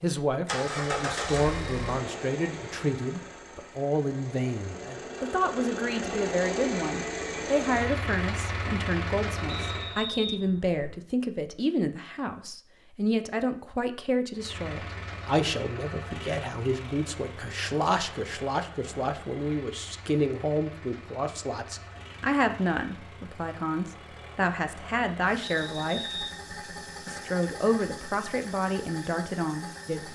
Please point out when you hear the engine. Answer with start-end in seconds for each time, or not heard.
0.2-10.0, 14.3-30.1.